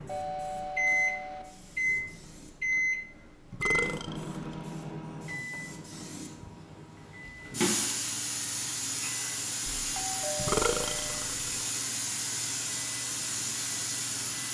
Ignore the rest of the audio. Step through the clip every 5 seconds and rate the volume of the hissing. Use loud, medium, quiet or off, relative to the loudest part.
quiet, loud, loud.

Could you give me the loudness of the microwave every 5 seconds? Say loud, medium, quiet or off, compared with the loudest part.
loud, quiet, quiet.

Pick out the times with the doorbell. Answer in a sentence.
You can hear the doorbell from 0.1 to 1.4 s and from 9.9 to 11.2 s.